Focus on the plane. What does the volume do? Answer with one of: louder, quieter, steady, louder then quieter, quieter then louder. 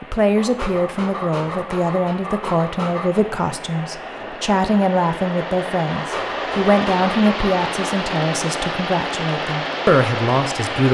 louder.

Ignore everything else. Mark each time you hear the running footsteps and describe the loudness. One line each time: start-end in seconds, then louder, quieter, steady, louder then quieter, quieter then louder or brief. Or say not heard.
not heard.